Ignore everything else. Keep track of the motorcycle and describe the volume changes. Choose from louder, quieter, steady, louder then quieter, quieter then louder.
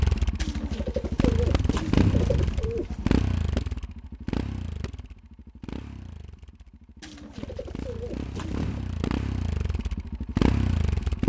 quieter then louder.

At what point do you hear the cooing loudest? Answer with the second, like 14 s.
2 s.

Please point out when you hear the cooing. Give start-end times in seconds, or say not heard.
0.3-3.1, 7.0-8.8.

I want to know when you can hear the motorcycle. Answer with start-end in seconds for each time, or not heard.
0.0-11.2.